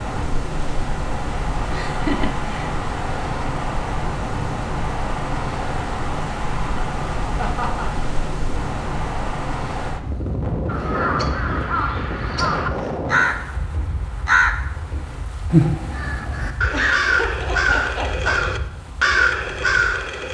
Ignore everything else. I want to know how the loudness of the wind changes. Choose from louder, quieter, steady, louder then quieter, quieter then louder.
quieter.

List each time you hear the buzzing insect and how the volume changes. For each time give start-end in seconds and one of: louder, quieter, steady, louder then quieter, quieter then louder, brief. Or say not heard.
not heard.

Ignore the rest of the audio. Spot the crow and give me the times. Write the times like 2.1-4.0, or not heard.
10.7-20.2.